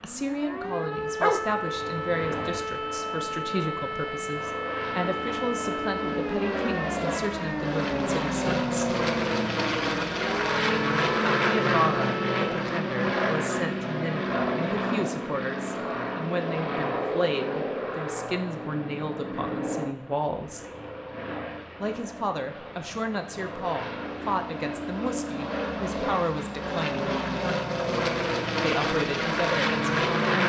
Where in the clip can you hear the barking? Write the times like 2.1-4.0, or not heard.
1.2-2.6.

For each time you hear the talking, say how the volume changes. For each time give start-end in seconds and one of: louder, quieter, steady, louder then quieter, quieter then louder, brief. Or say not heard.
0.0-8.9 steady
11.4-20.6 steady
21.8-27.1 steady
28.6-30.4 brief.